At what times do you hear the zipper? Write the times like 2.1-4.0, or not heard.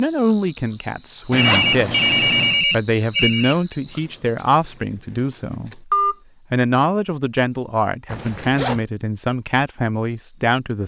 1.3-2.6, 8.1-8.8.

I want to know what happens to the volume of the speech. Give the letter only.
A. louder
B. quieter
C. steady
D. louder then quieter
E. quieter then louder
C.